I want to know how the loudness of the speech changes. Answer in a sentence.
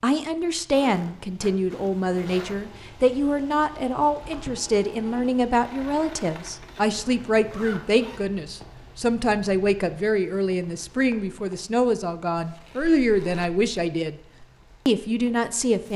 The volume of the speech stays about the same.